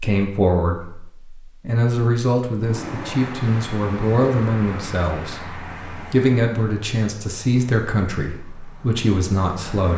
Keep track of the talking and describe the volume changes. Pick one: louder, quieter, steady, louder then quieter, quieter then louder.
steady.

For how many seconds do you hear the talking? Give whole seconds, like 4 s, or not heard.
10 s.